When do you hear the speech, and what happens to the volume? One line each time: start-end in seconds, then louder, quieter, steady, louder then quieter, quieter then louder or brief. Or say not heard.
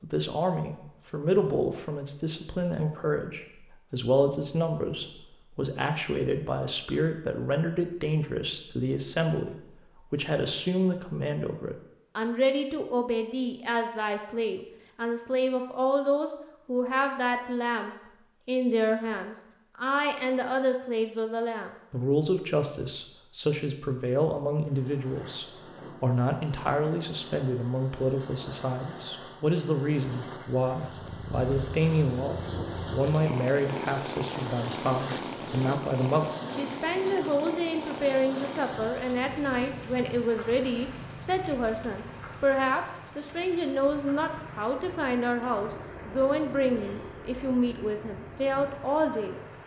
0.0-49.4 steady.